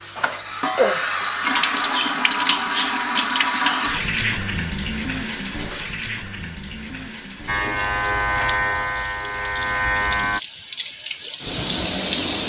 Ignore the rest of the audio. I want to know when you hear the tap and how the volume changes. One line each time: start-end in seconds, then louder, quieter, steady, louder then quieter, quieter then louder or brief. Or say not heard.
0.0-12.4 quieter then louder.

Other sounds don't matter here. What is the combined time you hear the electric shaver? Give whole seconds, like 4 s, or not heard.
3 s.